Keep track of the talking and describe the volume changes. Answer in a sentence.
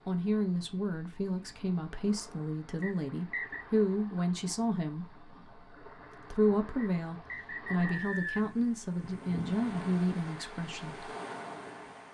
The loudness of the talking stays about the same.